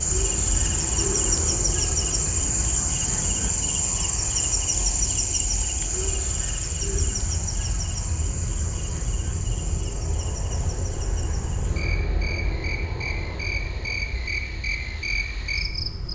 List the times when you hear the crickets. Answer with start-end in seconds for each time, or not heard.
0.0-16.1.